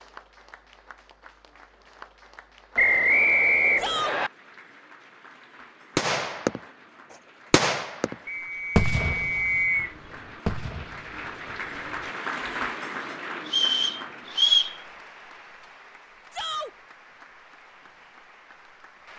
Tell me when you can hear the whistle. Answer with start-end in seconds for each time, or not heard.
2.8-4.3, 8.2-9.9, 13.4-14.8.